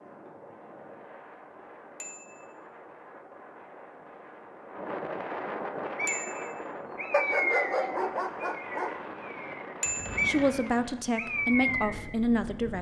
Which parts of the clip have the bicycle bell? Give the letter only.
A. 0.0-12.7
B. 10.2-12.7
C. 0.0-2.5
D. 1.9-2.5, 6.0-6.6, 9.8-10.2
D.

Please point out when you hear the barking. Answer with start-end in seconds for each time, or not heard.
7.1-8.9.